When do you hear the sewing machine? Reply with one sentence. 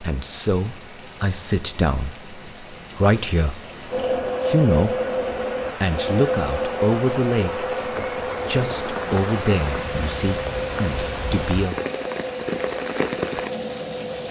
You can hear the sewing machine from 3.9 to 14.2 s.